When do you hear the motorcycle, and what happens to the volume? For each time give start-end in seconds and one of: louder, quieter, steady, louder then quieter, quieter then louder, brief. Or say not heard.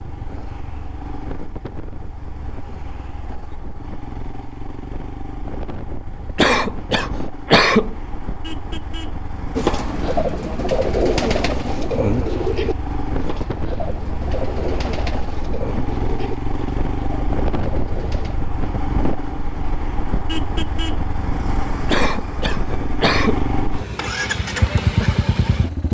0.0-25.8 louder.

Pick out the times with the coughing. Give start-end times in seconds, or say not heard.
6.3-8.0, 21.9-23.4.